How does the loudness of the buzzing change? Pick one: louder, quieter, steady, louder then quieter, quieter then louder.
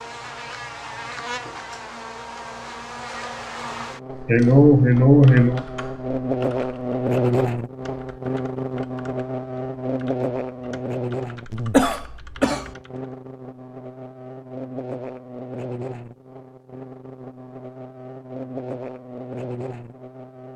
louder then quieter.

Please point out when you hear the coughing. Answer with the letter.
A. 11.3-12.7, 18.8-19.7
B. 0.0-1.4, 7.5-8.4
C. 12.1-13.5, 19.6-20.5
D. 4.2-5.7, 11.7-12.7
D.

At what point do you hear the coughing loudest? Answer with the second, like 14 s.
5 s.